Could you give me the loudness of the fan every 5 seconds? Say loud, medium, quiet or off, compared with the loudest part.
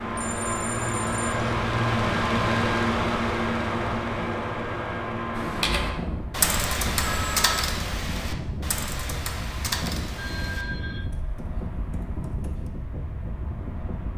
loud, medium, medium.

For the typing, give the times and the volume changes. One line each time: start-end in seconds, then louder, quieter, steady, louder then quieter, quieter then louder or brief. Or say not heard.
5.3-12.7 quieter.